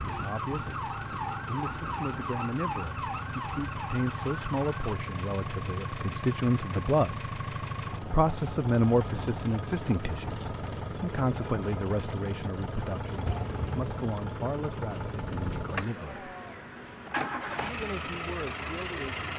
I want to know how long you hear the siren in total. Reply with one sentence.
The siren can be heard for 5 seconds in total.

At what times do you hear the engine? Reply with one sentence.
The engine can be heard from 0.0 to 19.3 s.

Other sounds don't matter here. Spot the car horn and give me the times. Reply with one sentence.
You can hear the car horn from 13.2 to 13.8 s.